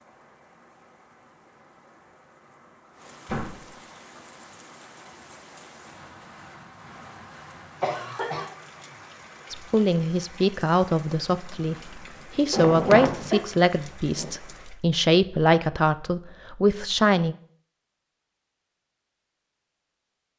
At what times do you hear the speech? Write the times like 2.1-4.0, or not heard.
9.5-17.4.